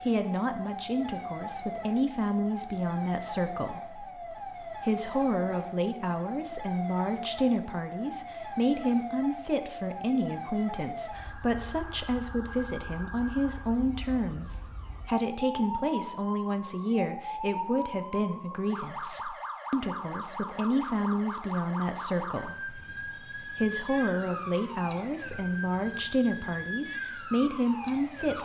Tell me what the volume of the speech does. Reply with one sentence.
The loudness of the speech stays about the same.